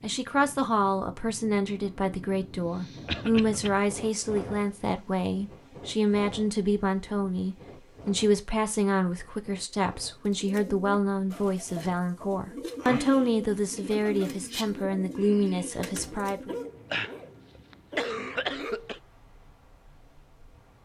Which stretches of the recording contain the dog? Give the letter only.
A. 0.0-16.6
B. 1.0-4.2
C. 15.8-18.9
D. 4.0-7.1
C.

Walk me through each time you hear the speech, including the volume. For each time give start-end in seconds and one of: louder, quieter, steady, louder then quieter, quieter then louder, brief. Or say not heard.
0.0-16.6 steady.